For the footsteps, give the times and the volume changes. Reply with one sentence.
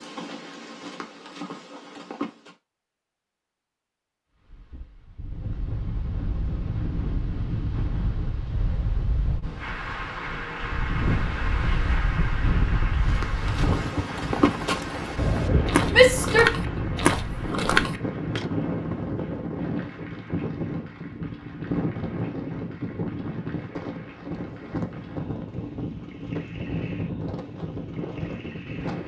The footsteps can be heard briefly from 0.0 to 2.5 s; and from 12.9 to 18.4 s, getting louder.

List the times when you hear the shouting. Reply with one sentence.
You can hear the shouting from 15.9 to 16.6 s.